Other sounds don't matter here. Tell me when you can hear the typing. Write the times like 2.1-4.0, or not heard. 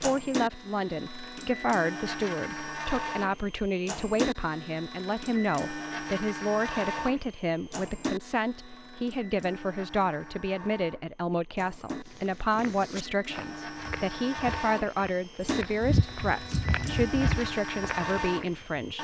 not heard.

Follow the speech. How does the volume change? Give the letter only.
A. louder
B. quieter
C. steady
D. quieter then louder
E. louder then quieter
C.